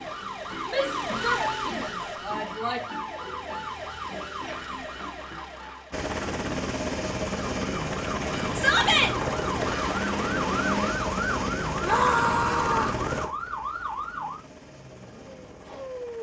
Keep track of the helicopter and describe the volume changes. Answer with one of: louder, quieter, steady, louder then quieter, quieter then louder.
quieter.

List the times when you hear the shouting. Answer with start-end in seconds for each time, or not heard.
0.7-2.9, 8.6-9.2, 11.8-13.0.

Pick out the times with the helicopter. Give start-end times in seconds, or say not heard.
5.9-16.1.